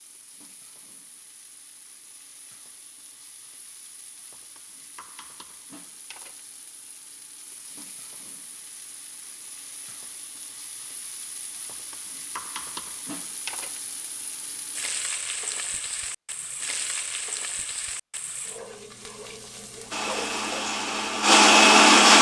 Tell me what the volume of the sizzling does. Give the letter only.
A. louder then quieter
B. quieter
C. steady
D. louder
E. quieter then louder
D.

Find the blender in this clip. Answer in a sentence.
You can hear the blender from 19.9 to 22.1 s.